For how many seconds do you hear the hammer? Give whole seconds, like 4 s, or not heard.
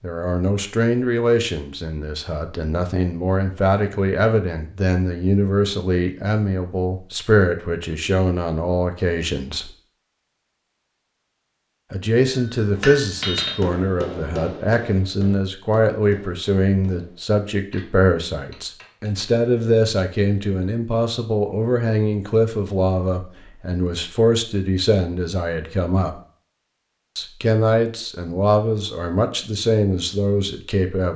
7 s.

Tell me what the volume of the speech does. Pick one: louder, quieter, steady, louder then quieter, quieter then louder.
steady.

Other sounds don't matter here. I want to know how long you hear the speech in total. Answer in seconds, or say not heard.
28 s.